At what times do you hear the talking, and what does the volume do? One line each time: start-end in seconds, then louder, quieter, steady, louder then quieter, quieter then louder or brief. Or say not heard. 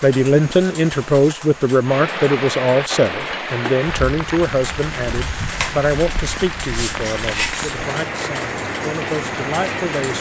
0.0-10.1 quieter.